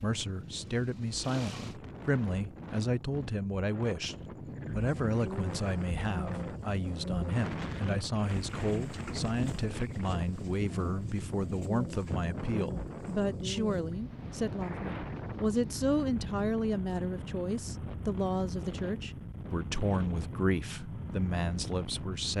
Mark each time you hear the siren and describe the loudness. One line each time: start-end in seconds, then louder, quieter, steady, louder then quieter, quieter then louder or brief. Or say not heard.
not heard.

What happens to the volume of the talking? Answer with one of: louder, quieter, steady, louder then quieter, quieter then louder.
steady.